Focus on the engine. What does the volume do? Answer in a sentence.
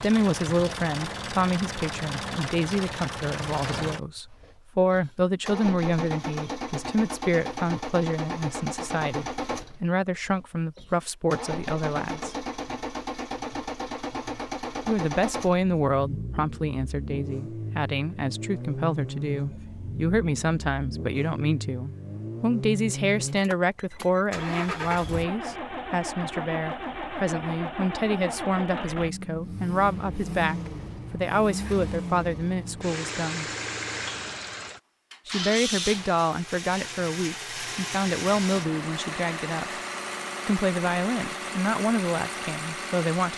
The volume of the engine stays about the same.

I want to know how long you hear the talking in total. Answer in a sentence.
The talking can be heard for 38 seconds in total.